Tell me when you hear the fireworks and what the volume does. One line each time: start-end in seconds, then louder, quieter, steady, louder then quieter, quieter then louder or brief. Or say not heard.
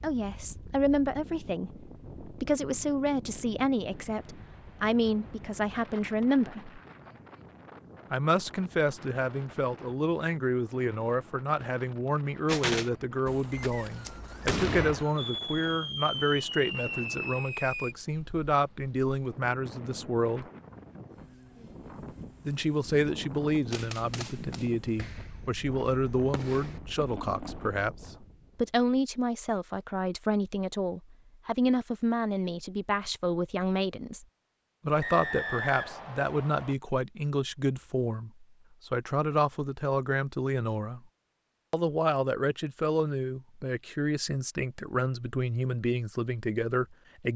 12.4-17.9 louder
23.7-27.8 quieter then louder.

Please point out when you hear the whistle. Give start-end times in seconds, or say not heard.
13.5-15.3, 35.0-36.8.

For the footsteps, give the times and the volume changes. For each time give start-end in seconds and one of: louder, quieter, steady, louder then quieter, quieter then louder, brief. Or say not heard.
not heard.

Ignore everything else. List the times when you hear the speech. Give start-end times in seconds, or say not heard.
0.0-6.8, 8.1-20.4, 22.4-34.2, 34.9-41.0, 41.7-47.3.